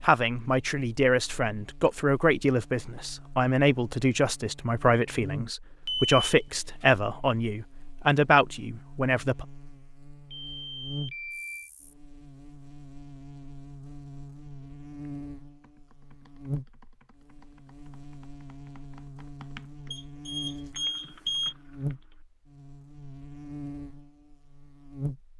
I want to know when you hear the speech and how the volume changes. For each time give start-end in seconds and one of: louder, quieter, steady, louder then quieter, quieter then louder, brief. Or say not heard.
0.0-9.4 steady.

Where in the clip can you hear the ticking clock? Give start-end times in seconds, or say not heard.
not heard.